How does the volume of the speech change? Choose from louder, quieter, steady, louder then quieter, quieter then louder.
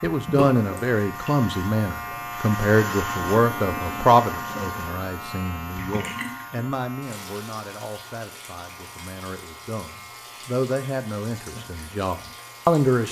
quieter then louder.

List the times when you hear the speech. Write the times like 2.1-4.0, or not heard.
0.0-13.0.